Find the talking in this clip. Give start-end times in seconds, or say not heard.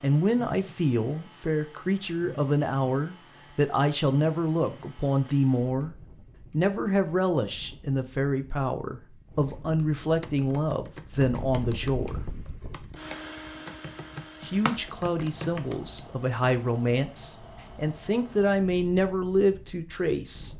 0.0-12.2, 14.4-20.5.